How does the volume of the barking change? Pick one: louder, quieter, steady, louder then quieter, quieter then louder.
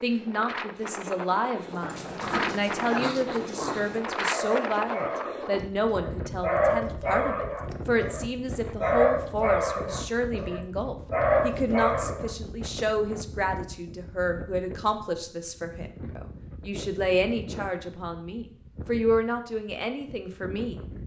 louder.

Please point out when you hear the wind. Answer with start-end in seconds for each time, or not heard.
0.0-21.0.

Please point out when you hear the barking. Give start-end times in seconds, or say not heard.
1.6-12.3.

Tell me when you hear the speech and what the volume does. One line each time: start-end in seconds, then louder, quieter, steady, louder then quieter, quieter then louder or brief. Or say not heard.
0.0-20.8 steady.